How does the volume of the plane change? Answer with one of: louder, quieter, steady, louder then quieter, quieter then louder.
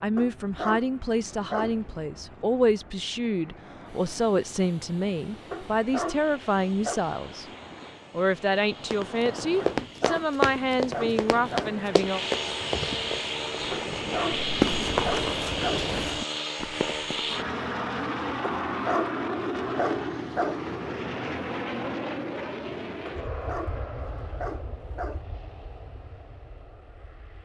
louder then quieter.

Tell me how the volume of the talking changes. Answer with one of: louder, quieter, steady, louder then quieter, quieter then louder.
steady.